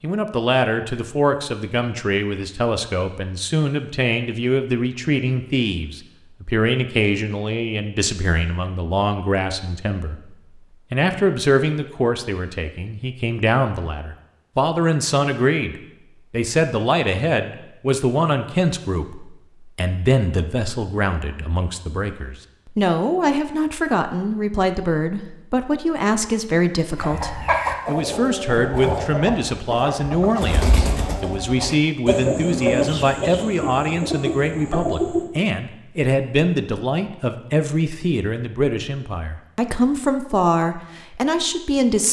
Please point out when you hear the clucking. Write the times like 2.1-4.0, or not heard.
26.9-35.2.